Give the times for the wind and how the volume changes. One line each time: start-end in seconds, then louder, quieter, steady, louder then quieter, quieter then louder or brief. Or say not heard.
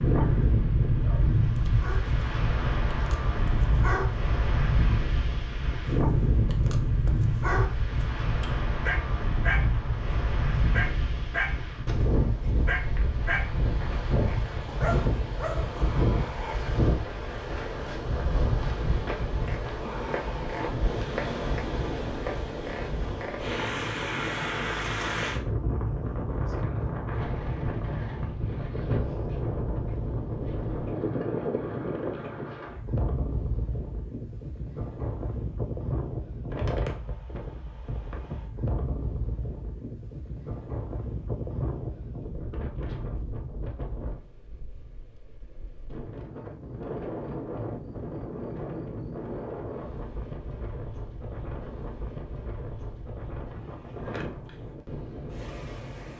0.0-56.1 quieter.